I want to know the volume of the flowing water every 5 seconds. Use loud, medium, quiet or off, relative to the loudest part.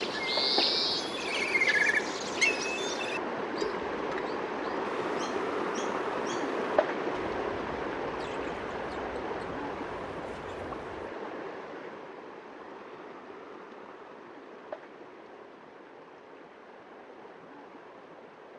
loud, loud, medium, quiet.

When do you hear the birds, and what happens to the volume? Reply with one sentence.
You can hear the birds from 0.0 to 11.1 s, getting quieter.